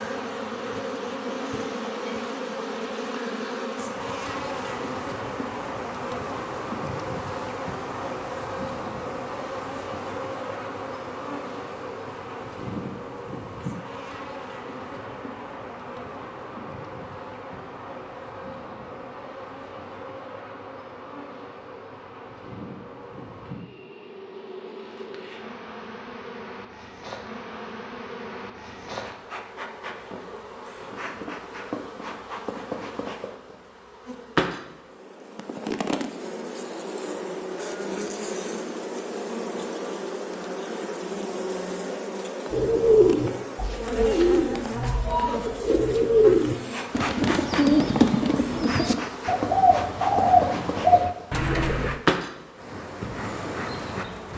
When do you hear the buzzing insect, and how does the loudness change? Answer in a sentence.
The buzzing insect can be heard from 0.0 to 54.3 s, getting quieter then louder.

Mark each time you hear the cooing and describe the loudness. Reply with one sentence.
You can hear the cooing from 42.5 to 52.0 s, at a steady volume.